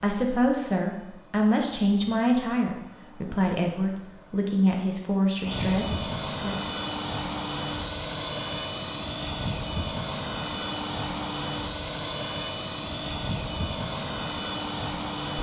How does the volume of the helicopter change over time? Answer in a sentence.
The volume of the helicopter goes up.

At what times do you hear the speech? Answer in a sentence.
You can hear the speech from 0.0 to 6.6 s.